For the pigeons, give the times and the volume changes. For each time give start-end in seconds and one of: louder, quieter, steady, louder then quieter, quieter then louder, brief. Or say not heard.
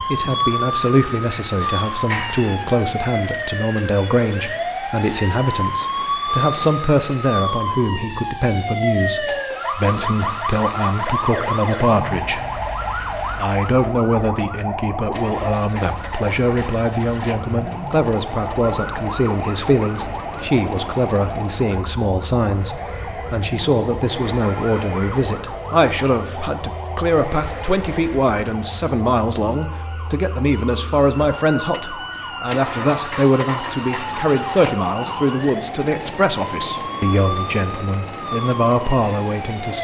not heard.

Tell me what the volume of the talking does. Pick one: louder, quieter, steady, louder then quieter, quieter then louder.
steady.